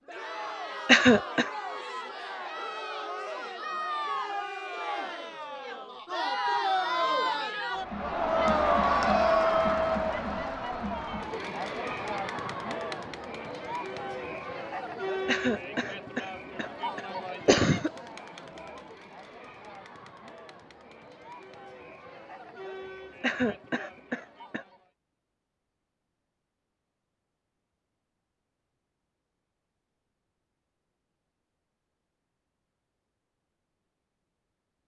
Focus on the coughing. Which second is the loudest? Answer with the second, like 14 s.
1 s.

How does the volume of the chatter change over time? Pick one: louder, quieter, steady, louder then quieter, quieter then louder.
louder then quieter.